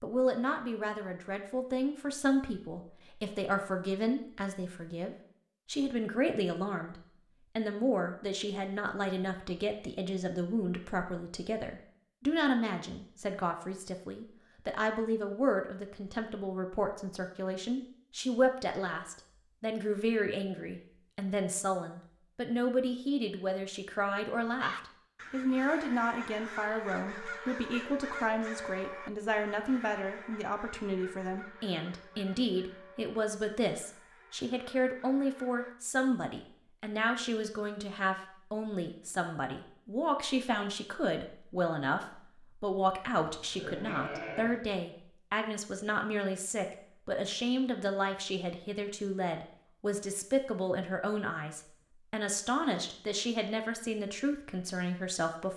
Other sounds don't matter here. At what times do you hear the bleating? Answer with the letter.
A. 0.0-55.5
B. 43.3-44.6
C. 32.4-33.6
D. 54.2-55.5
B.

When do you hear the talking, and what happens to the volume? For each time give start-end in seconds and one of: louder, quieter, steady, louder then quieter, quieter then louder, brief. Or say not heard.
0.0-55.5 steady.